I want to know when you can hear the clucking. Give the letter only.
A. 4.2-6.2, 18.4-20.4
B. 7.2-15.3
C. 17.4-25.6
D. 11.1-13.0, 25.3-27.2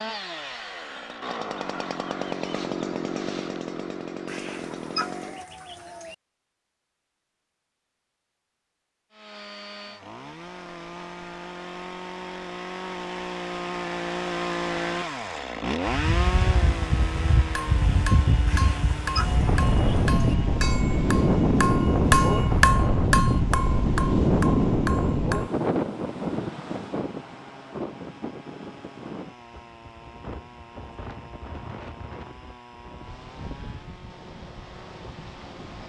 A.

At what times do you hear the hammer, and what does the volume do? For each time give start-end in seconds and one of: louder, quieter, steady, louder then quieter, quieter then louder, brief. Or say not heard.
17.4-25.6 louder then quieter.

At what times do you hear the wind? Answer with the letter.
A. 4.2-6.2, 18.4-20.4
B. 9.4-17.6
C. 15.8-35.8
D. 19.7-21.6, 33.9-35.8
C.